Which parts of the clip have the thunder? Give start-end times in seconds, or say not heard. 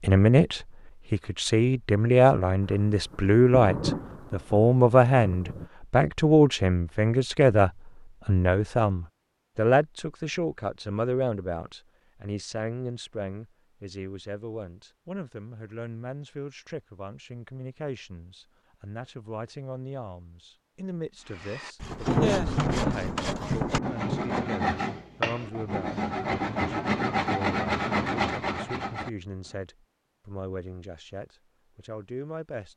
2.6-5.7, 21.9-24.4.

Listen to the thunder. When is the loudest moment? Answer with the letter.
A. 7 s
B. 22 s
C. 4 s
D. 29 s
B.